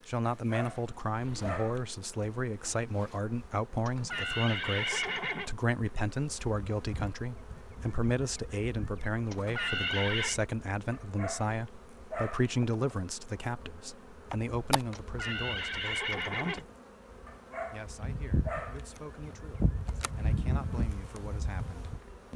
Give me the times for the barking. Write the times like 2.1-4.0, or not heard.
0.4-1.9, 10.9-12.6, 17.2-18.9.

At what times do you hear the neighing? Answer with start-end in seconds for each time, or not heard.
3.9-5.5, 9.3-10.4, 14.9-16.6.